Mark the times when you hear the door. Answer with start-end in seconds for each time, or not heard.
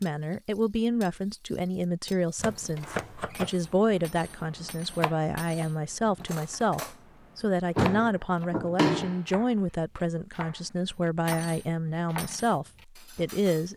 2.8-3.5, 7.8-9.2.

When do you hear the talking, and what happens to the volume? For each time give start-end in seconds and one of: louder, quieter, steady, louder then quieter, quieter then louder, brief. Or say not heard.
0.0-13.7 steady.